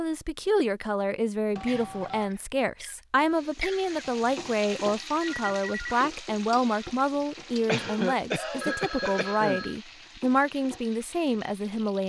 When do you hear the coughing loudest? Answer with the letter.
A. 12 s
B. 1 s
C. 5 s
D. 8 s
D.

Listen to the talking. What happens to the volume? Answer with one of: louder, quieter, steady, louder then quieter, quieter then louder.
steady.